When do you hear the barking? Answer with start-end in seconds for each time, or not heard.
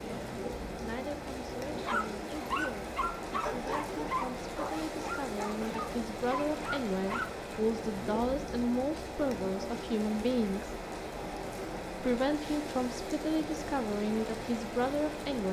1.8-7.3.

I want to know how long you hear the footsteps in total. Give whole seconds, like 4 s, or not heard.
not heard.